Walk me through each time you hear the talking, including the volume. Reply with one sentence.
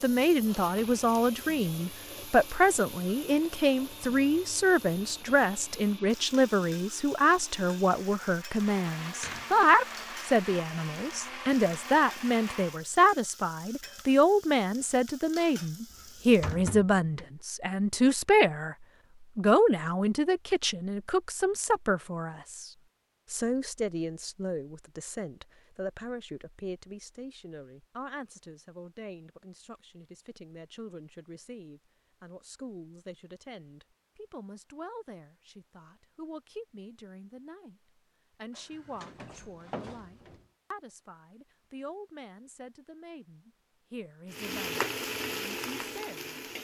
The talking can be heard from 0.0 to 18.8 s, at a steady volume; and from 19.4 to 46.4 s, getting quieter.